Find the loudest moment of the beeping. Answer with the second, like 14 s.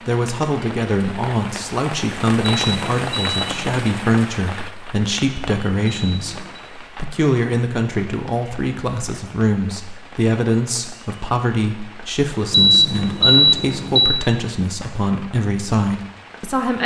13 s.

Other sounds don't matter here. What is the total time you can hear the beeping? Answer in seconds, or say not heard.
4 s.